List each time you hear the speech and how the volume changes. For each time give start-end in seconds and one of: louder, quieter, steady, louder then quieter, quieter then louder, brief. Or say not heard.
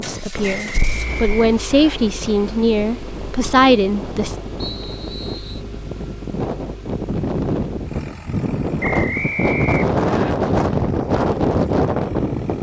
0.0-4.3 louder.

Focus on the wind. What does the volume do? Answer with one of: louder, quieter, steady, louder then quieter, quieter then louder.
louder.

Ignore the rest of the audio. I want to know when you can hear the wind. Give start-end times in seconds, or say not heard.
0.0-12.5.